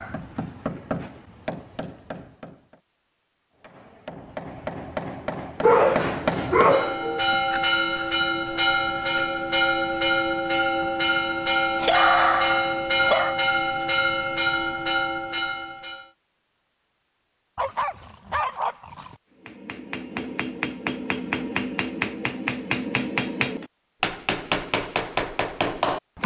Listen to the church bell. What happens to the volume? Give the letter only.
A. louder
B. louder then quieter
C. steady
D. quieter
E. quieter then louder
C.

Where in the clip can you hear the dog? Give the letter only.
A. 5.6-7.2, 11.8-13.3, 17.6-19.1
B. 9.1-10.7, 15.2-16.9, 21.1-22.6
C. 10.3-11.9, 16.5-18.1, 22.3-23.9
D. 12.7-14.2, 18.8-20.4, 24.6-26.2
A.